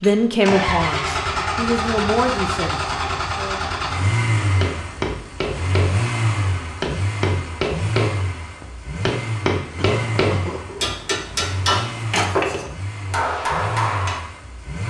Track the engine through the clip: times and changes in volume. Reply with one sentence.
You can hear the engine from 0.0 to 14.8 s, getting quieter.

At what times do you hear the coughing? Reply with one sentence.
You can hear the coughing from 9.8 to 10.8 s.